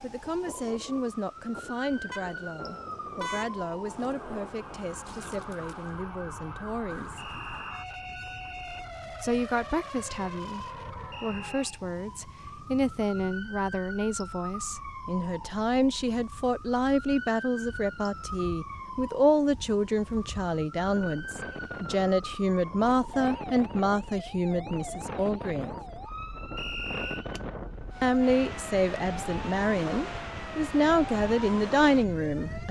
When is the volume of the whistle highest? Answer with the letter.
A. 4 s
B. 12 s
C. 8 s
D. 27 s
D.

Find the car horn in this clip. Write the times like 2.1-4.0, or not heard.
2.1-3.5.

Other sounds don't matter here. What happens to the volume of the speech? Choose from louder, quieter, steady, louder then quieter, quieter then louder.
louder.